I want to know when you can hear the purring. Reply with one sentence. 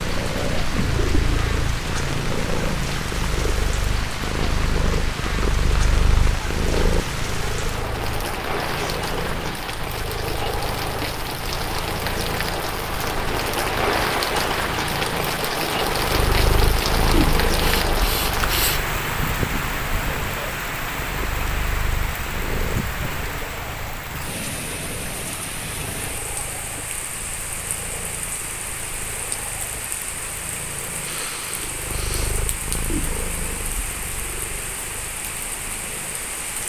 You can hear the purring from 0.0 to 36.6 s.